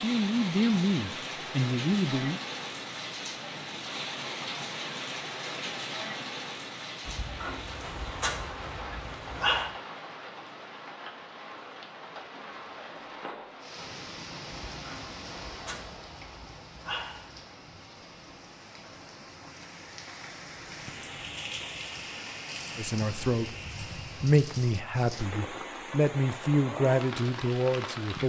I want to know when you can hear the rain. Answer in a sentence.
The rain can be heard from 0.0 to 28.2 s.